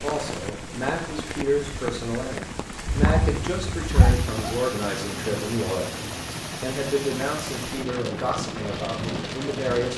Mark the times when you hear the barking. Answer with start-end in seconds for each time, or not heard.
2.9-4.5.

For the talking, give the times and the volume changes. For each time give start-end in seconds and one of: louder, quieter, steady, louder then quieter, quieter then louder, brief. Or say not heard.
0.0-9.9 steady.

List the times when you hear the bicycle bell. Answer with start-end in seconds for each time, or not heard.
not heard.